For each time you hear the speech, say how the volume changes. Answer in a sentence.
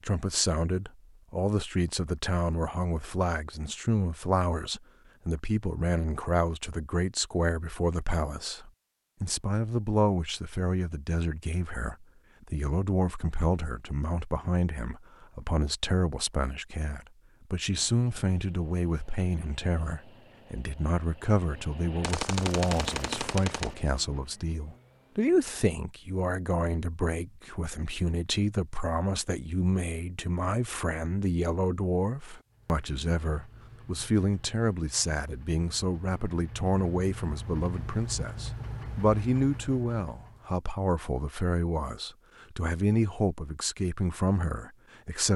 You can hear the speech from 0.0 to 45.3 s, at a steady volume.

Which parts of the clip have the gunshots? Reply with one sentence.
The gunshots can be heard from 22.0 to 23.8 s.